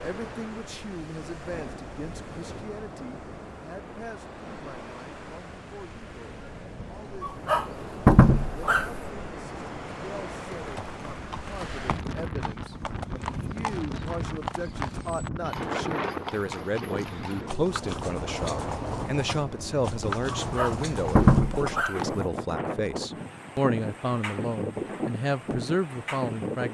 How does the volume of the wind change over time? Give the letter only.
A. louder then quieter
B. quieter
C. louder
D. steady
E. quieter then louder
C.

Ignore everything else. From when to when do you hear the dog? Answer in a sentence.
You can hear the dog from 7.2 to 8.9 s and from 20.4 to 22.0 s.